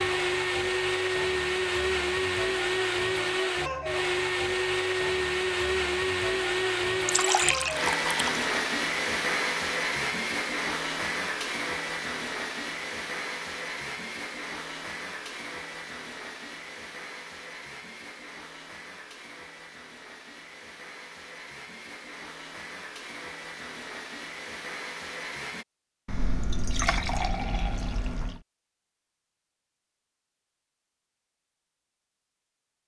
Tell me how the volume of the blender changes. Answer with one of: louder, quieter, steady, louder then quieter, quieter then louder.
quieter.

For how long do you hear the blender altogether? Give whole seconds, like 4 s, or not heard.
26 s.